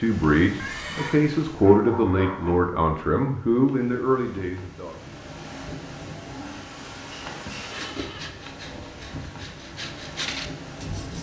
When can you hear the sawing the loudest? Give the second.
10 s.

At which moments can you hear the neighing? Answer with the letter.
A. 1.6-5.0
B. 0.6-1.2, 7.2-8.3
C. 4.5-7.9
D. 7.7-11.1
B.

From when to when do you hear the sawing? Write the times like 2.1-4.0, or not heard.
7.7-11.1.